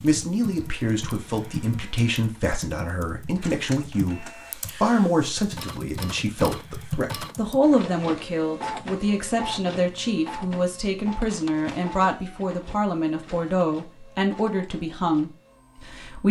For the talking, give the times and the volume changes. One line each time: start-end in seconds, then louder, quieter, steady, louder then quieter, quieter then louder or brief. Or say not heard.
0.0-16.2 steady.